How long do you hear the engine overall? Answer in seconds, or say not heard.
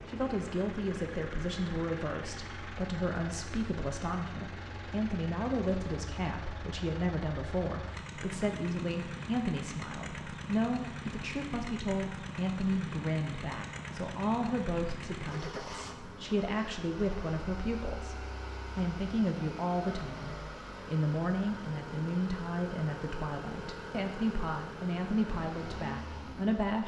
27 s.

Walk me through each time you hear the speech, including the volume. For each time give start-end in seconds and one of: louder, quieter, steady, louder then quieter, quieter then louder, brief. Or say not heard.
0.1-26.8 steady.